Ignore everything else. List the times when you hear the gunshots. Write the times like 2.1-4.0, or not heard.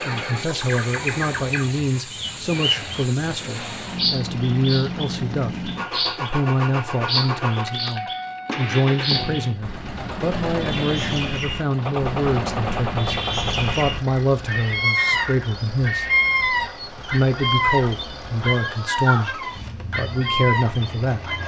11.8-13.8.